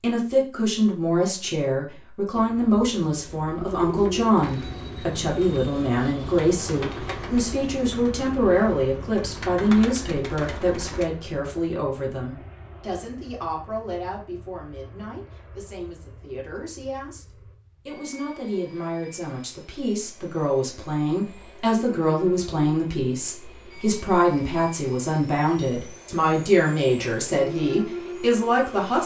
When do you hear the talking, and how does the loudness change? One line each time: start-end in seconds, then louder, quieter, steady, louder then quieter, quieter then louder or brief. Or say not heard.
0.0-29.0 quieter then louder.